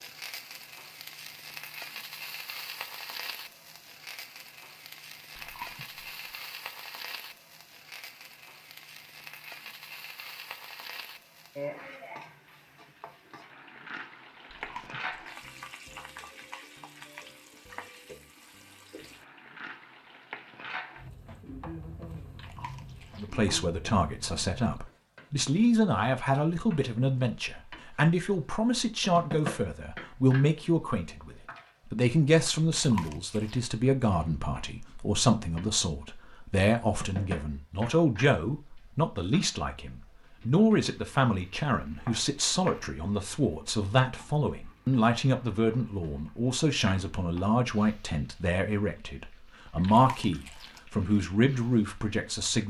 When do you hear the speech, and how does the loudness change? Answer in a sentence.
You can hear the speech from 23.1 to 52.6 s, at a steady volume.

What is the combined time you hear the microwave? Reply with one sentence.
You can't hear the microwave here.